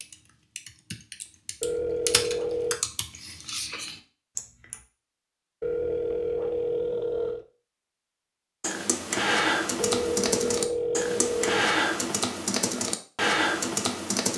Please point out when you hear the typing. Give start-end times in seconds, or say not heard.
0.0-4.8, 8.6-14.3.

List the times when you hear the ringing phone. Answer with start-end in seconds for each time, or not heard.
1.6-2.8, 5.6-7.5, 9.8-11.7.